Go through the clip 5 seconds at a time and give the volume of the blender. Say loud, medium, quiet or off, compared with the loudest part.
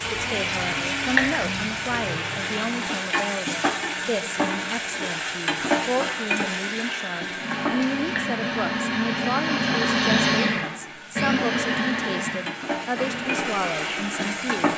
medium, loud, loud.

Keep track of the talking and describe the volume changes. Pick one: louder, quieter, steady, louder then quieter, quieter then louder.
steady.